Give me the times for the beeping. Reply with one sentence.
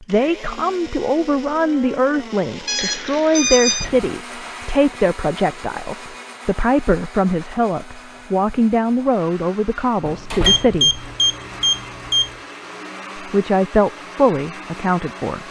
The beeping can be heard from 2.6 to 3.9 s and from 10.4 to 12.3 s.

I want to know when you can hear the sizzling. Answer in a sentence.
The sizzling can't be heard in this clip.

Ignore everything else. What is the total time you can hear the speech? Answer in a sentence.
The speech can be heard for 13 seconds in total.